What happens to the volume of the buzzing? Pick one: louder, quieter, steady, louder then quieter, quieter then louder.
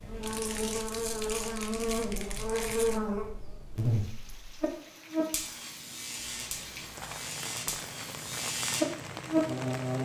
quieter then louder.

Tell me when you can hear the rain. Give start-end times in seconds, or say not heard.
3.6-10.0.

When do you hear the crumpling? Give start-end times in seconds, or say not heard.
0.2-3.0, 6.2-7.3.